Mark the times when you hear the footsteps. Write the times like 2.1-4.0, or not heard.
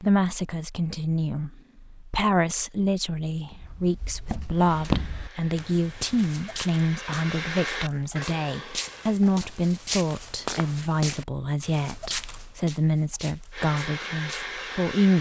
3.3-14.6.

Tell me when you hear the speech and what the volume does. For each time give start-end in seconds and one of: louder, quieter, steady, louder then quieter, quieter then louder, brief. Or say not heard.
0.0-15.1 steady.